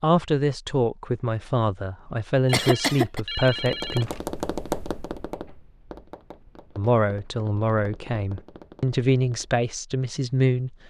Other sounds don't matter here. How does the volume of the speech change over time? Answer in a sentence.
The volume of the speech stays about the same.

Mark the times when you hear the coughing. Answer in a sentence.
You can hear the coughing from 2.5 to 3.2 s.